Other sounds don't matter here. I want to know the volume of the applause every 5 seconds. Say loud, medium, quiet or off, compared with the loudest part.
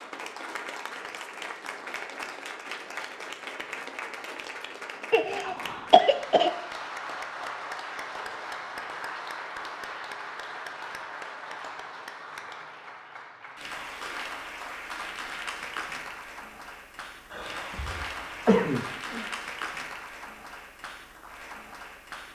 loud, loud, loud, loud, medium.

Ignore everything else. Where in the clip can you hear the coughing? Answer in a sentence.
The coughing can be heard from 5.1 to 6.5 s and from 17.3 to 19.2 s.